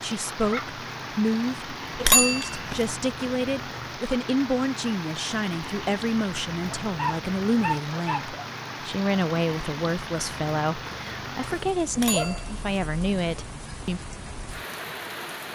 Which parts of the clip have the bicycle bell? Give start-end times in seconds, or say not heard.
2.0-2.9, 11.9-12.6.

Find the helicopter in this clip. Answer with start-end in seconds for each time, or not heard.
not heard.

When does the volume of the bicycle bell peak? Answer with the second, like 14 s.
2 s.